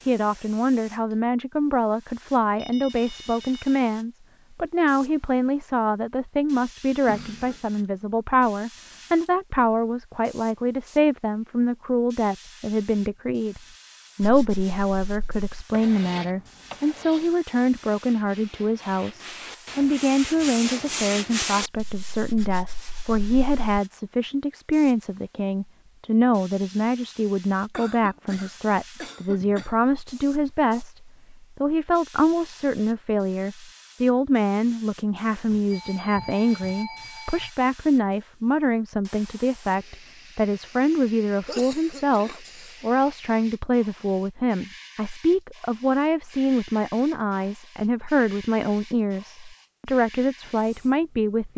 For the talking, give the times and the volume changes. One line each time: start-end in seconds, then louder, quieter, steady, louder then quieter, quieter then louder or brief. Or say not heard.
0.1-51.5 steady.